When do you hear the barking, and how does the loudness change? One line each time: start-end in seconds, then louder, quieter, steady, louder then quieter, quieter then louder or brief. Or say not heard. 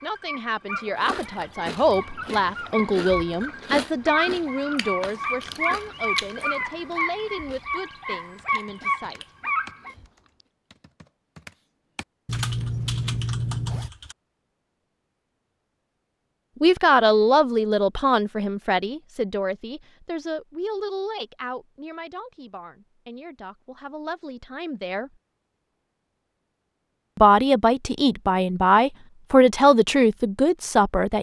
0.0-9.9 louder.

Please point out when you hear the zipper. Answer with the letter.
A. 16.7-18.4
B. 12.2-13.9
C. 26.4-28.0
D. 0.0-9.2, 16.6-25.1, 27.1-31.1
B.